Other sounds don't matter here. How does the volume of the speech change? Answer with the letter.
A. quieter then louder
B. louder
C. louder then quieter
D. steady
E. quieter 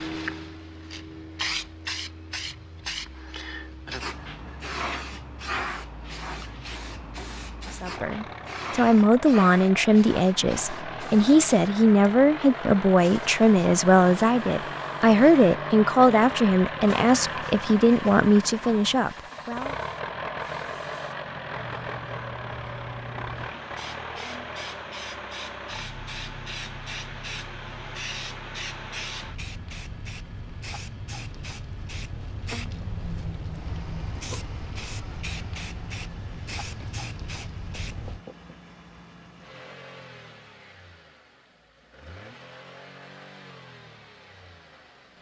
D.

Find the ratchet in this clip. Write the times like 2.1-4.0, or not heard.
not heard.